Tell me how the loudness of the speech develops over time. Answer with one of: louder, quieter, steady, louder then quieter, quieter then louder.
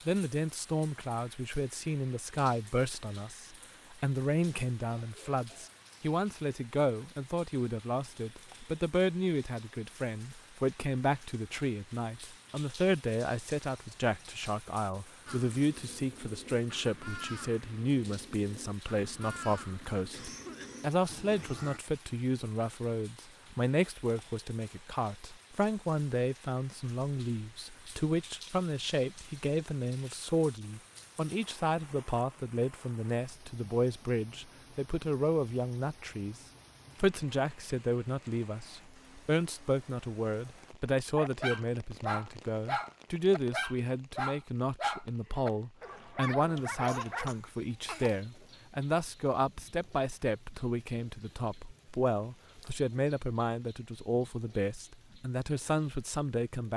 steady.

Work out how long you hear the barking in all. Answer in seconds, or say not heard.
6 s.